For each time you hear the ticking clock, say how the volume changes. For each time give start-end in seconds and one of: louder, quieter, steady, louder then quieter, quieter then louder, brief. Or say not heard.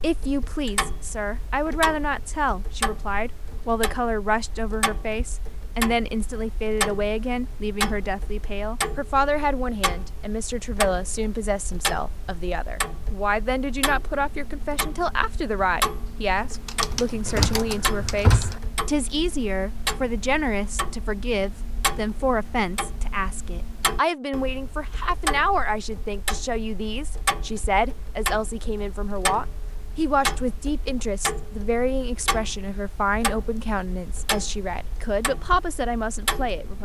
0.0-36.8 steady.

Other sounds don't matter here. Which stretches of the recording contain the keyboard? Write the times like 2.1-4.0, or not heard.
16.5-18.6.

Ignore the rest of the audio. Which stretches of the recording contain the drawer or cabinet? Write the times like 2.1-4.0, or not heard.
17.2-18.6.